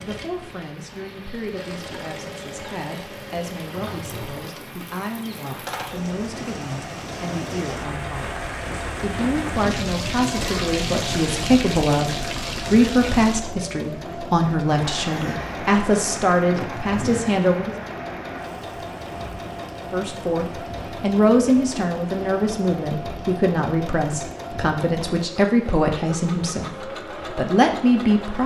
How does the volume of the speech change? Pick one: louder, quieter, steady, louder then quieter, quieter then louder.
louder.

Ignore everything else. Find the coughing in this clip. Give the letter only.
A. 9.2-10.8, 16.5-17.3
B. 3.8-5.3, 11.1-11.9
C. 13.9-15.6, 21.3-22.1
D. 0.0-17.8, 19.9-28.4
A.